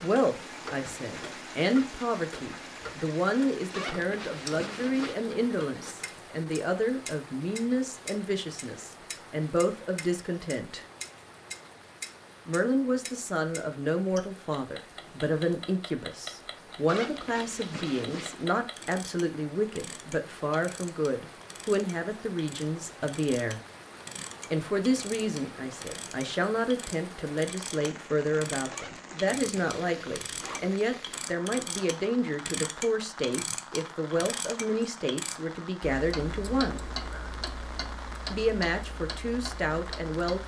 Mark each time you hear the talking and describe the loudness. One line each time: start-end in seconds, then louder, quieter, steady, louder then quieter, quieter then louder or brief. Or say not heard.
0.0-10.8 steady
12.4-23.6 steady
24.5-36.9 steady
38.3-40.4 brief.